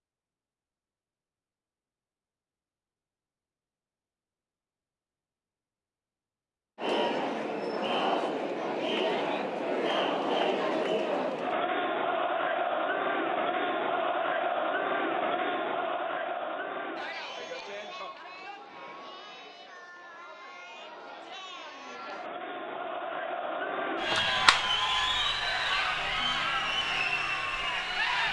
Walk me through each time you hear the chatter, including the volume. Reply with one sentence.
The chatter can be heard from 6.8 to 28.2 s, getting quieter then louder.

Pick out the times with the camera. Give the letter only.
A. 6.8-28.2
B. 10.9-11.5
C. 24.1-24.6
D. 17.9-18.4
C.